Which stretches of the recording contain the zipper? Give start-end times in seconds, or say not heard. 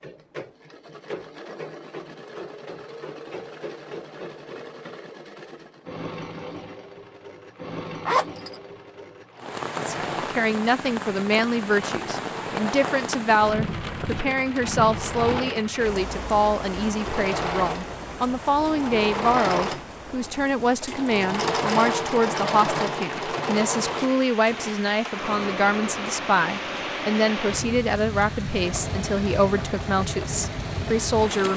8.1-8.6.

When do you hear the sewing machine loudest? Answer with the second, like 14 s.
22 s.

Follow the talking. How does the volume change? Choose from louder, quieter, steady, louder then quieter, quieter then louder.
steady.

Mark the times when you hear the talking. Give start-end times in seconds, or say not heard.
9.8-31.5.